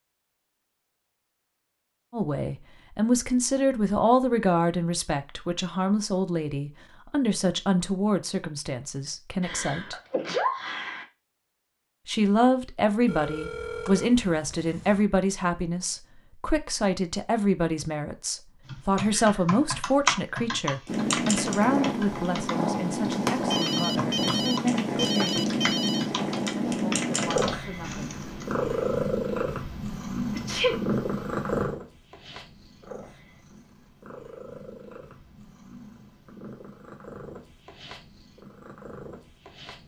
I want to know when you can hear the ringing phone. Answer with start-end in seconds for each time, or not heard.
13.1-15.1, 23.5-26.1.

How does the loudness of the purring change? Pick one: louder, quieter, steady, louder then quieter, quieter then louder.
quieter.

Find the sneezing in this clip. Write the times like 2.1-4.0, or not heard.
9.4-11.1, 30.4-30.8.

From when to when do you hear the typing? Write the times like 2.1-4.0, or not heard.
18.6-29.0.